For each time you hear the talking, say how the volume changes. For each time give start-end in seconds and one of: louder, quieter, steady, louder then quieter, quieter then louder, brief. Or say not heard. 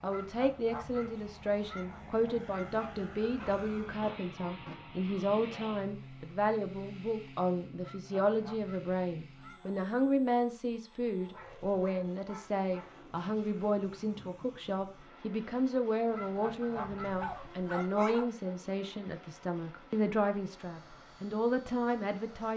0.0-22.5 steady.